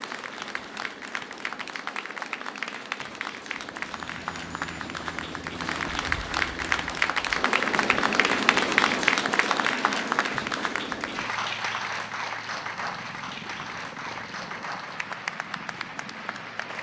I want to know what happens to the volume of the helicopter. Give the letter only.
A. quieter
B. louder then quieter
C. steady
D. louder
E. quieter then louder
B.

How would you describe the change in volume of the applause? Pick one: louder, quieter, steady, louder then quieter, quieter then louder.
louder then quieter.